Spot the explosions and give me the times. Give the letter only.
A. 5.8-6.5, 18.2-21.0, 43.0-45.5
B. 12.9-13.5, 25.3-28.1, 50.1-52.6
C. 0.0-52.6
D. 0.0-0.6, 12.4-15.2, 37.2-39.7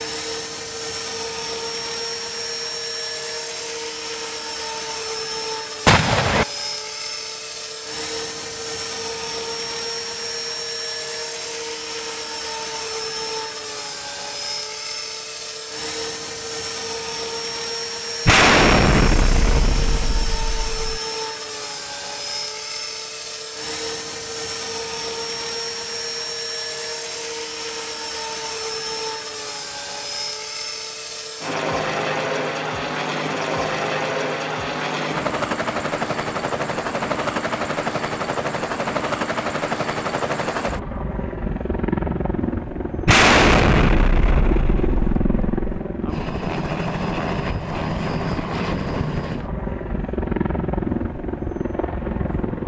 A.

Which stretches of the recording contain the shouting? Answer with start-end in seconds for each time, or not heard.
not heard.